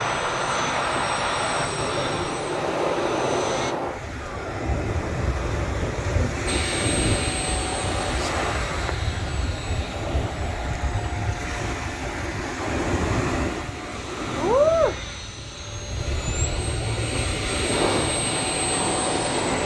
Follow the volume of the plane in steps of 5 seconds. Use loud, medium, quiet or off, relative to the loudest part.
loud, loud, medium, loud.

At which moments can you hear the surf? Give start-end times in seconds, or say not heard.
0.0-19.6.